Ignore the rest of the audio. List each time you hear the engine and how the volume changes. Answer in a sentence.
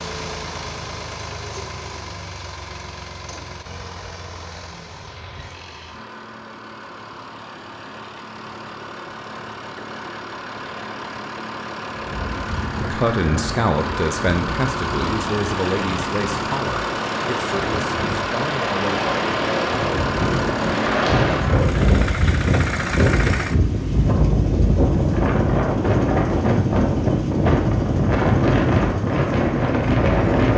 The engine can be heard from 0.0 to 30.5 s, getting louder.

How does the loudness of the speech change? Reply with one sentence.
The volume of the speech goes down.